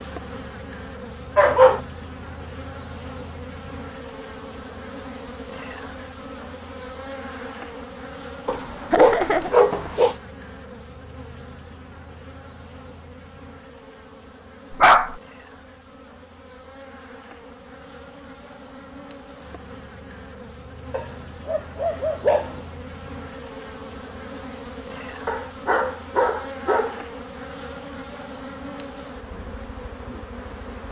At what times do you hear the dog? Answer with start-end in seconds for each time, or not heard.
1.4-1.8, 8.4-10.2, 14.7-15.2, 20.9-22.6, 25.2-27.0.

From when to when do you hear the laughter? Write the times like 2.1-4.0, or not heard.
8.9-9.5.